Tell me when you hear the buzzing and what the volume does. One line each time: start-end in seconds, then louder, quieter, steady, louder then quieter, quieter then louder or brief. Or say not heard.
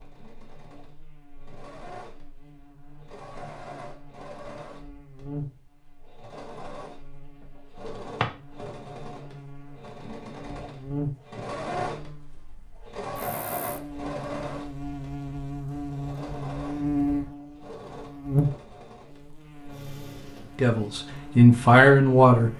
0.1-22.5 louder.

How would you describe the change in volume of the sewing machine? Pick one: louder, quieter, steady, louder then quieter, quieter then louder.
louder then quieter.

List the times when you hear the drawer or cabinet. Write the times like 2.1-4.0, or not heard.
7.8-8.3.